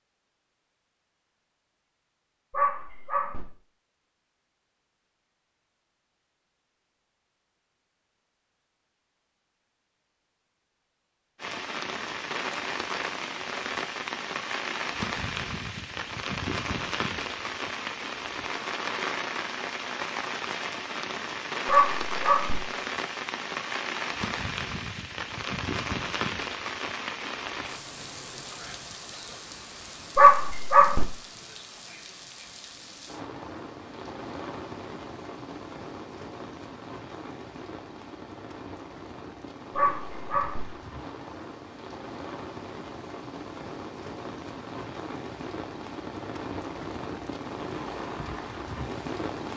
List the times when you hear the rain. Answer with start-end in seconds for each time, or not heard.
11.3-49.5.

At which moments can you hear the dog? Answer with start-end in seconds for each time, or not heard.
2.5-3.5, 21.6-22.6, 30.1-31.1, 39.7-40.6.